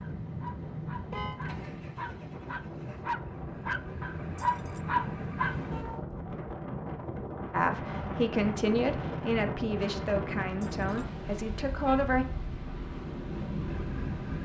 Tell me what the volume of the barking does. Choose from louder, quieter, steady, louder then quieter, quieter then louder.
louder.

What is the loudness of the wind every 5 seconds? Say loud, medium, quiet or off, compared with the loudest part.
medium, loud, loud.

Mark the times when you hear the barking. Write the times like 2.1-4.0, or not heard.
0.0-5.5.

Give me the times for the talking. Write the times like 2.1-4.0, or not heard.
7.5-12.2.